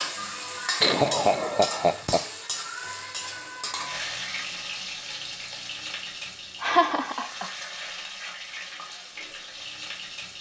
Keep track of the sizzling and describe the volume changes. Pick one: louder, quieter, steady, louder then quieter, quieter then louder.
quieter.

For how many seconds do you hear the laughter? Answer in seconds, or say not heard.
2 s.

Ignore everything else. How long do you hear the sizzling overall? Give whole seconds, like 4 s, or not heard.
10 s.